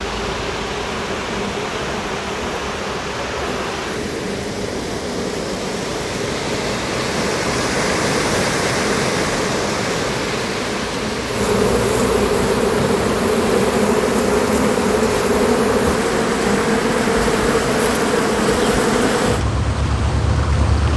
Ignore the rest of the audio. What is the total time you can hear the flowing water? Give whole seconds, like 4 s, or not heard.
21 s.